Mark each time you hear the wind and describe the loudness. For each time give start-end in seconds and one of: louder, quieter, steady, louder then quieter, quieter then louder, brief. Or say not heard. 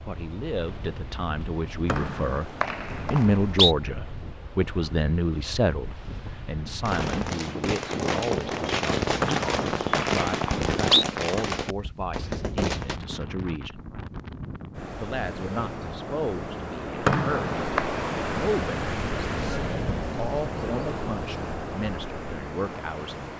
0.0-23.3 louder.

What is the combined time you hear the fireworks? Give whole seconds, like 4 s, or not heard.
6 s.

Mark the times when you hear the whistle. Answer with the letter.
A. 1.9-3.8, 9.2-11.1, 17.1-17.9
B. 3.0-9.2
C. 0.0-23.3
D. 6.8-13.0
A.